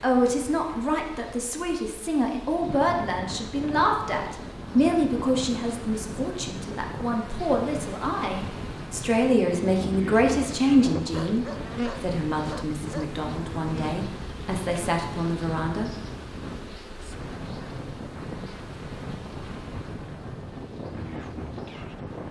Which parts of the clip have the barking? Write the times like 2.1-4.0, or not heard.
11.1-13.1.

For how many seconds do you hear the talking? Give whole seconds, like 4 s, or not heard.
16 s.